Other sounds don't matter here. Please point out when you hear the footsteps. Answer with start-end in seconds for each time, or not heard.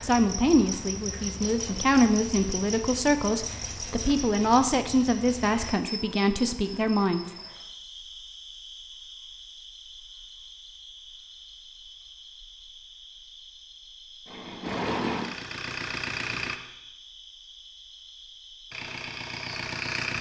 not heard.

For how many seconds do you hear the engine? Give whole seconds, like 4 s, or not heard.
4 s.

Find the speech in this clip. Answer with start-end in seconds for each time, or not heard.
0.0-7.2.